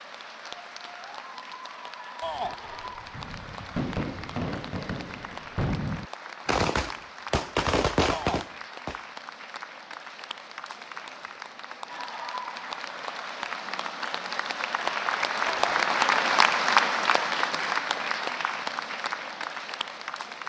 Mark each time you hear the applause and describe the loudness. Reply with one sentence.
The applause can be heard from 0.0 to 20.4 s, getting louder.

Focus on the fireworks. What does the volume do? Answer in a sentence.
The loudness of the fireworks goes up.